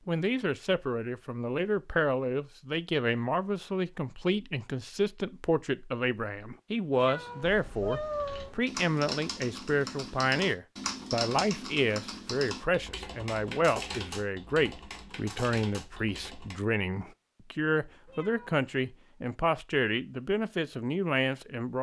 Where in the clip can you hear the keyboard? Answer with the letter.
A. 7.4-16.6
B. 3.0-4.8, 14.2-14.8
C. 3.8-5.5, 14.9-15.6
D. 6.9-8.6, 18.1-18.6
A.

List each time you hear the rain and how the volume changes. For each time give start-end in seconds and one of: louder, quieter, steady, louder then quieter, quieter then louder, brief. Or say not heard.
not heard.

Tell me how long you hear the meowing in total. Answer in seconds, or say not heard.
2 s.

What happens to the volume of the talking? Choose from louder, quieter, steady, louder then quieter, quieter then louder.
steady.